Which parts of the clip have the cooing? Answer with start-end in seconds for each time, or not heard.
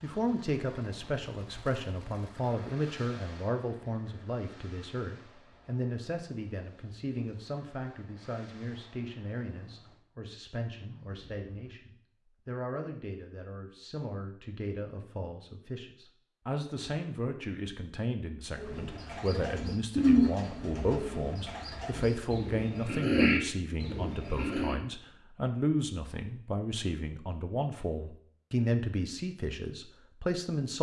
18.6-24.8.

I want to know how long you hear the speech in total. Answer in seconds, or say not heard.
31 s.